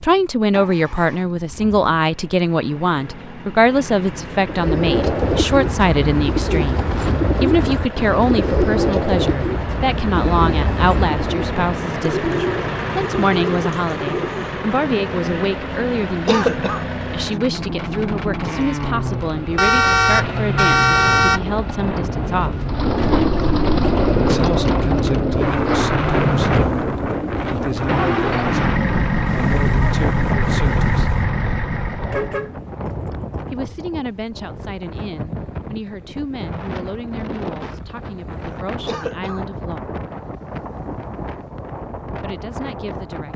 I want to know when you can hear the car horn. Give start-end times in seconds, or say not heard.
10.1-11.0, 19.6-21.4, 32.1-33.5.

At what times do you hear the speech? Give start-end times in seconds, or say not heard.
0.0-22.6, 24.1-31.1, 33.5-40.0, 42.1-43.3.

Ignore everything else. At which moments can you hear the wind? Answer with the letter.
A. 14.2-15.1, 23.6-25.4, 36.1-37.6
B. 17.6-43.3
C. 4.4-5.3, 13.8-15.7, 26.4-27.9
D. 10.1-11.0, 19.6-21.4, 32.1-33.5
B.